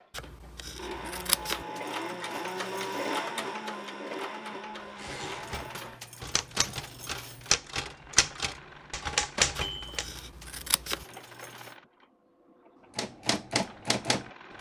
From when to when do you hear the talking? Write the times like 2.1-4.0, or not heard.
not heard.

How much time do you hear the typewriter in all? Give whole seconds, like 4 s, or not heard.
7 s.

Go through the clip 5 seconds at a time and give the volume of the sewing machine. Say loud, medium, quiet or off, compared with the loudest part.
loud, medium, quiet.